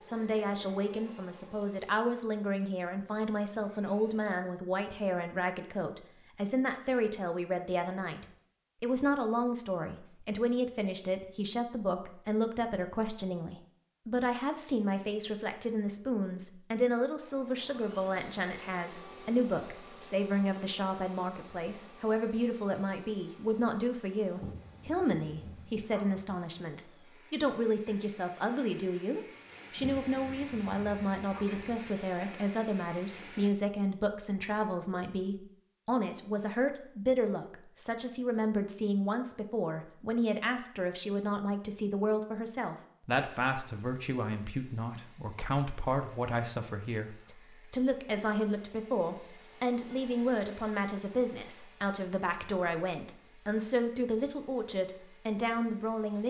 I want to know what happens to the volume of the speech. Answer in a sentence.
The loudness of the speech stays about the same.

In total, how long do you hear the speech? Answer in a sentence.
You can hear the speech for 56 seconds altogether.